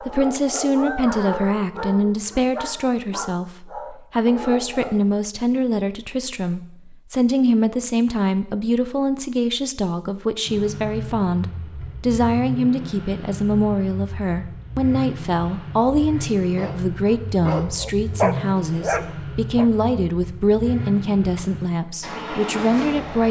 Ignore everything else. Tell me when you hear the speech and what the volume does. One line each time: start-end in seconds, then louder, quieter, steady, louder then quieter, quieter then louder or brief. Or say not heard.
0.0-23.2 steady.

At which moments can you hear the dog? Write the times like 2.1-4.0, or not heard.
0.0-5.0, 16.6-19.7.